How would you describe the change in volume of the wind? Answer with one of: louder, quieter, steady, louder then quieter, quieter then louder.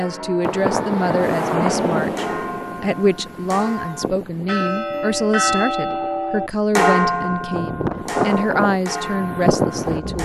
quieter then louder.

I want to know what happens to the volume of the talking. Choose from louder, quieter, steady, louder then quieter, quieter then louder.
steady.